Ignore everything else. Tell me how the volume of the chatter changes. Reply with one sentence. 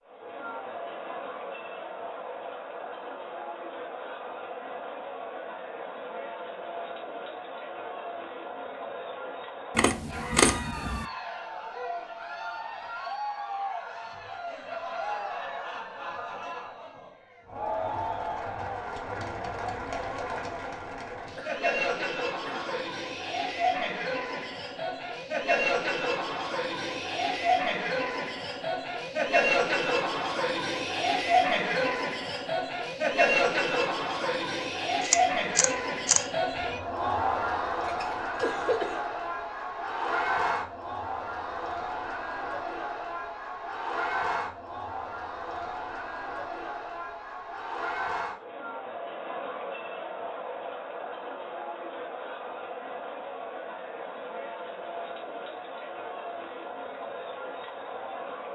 The loudness of the chatter goes up, then down.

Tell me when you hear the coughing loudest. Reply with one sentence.
The volume of the coughing peaks at 39 seconds.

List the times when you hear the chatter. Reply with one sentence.
You can hear the chatter from 0.1 to 58.5 s.